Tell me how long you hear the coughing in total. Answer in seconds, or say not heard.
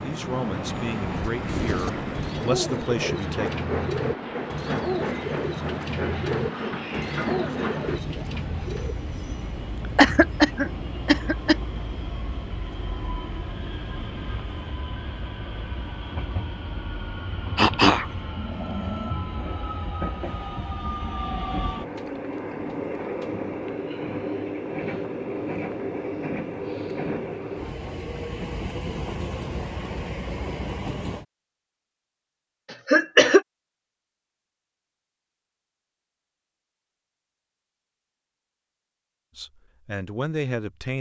4 s.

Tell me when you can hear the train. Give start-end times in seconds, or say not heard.
0.0-31.2.